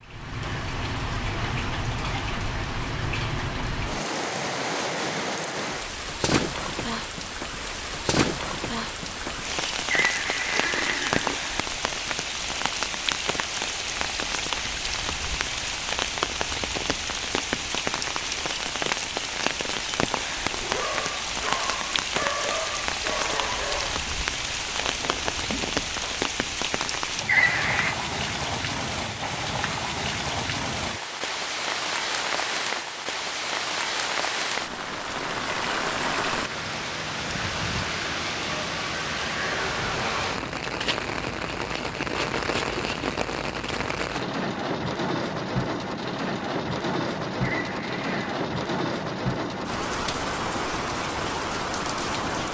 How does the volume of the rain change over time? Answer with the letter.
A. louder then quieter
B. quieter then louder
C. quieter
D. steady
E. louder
D.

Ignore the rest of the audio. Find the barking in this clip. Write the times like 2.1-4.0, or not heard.
20.4-26.2.